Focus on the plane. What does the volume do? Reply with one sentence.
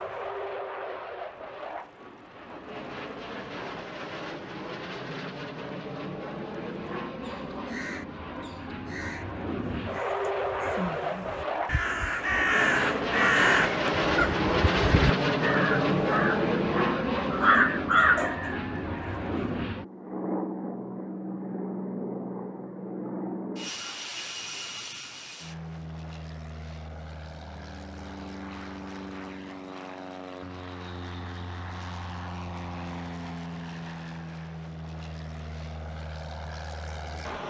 The volume of the plane goes up, then down.